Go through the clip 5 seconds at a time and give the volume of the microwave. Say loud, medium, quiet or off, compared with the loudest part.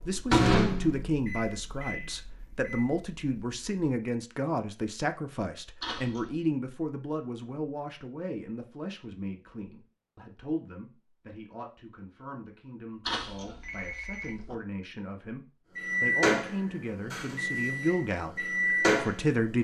loud, off, off, loud.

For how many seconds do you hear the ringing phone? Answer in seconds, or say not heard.
2 s.